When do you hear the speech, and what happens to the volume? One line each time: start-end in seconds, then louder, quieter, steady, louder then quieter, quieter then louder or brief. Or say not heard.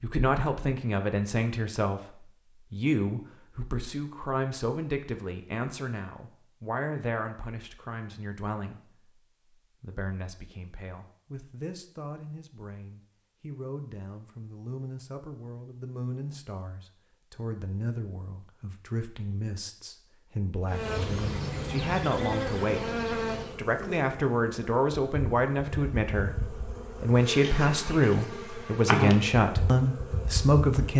0.0-30.9 quieter then louder.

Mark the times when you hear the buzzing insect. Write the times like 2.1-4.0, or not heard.
20.6-30.9.